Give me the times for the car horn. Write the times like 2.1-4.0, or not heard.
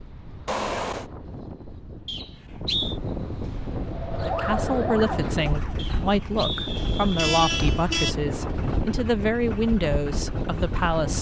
0.5-1.1, 6.8-8.2.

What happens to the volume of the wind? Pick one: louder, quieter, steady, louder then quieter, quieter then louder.
louder.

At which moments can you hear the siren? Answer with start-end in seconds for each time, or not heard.
4.2-5.8.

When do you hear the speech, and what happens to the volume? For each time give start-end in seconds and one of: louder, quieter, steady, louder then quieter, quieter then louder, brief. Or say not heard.
4.2-11.1 steady.